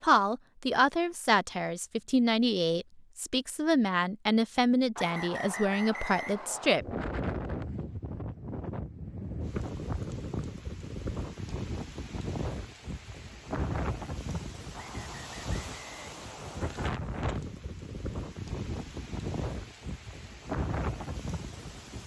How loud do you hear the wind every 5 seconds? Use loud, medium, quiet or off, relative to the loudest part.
off, loud, loud, loud, loud.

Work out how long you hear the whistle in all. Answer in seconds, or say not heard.
4 s.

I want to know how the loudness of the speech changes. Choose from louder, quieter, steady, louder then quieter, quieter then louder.
steady.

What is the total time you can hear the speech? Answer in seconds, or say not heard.
7 s.